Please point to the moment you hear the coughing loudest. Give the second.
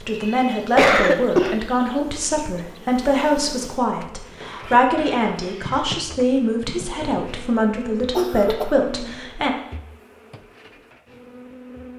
1 s.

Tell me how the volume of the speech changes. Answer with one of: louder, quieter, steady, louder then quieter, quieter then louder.
steady.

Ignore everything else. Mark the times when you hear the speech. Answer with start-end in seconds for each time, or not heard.
0.0-9.6.